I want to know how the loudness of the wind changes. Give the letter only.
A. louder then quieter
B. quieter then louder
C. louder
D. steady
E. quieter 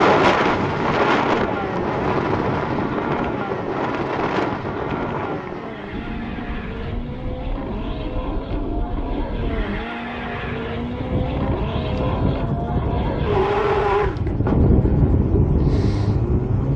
B.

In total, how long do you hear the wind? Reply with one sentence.
The wind can be heard for 17 seconds in total.